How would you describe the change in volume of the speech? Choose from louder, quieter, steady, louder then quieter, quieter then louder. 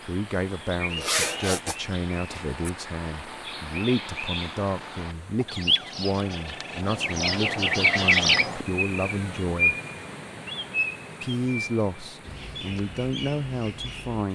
steady.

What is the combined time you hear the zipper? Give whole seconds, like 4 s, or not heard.
2 s.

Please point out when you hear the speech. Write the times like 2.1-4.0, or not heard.
0.0-9.8, 11.2-14.3.